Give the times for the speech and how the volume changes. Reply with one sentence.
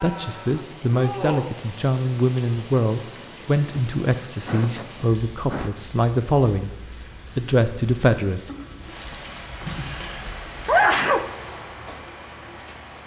The speech can be heard from 0.0 to 6.8 s, at a steady volume; and briefly from 7.3 to 8.5 s.